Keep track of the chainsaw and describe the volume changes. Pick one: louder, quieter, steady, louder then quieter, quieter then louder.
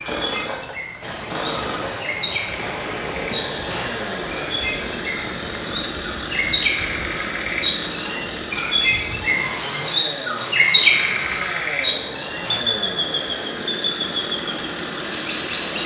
steady.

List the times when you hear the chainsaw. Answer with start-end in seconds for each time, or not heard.
0.0-15.8.